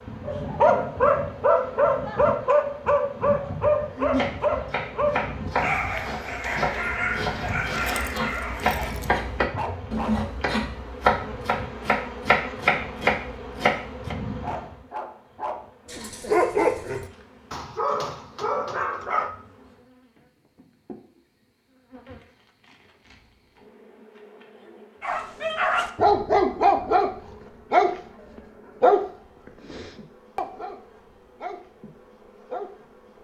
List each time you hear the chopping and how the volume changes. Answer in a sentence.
The chopping can be heard from 4.1 to 14.2 s, getting louder.